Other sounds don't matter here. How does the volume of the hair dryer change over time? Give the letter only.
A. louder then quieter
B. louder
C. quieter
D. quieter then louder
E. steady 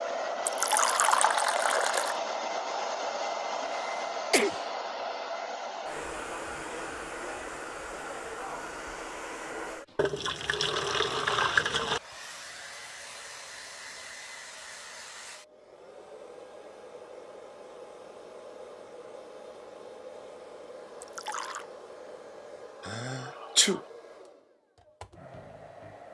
C.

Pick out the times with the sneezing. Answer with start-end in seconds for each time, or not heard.
3.6-4.6, 22.8-23.8.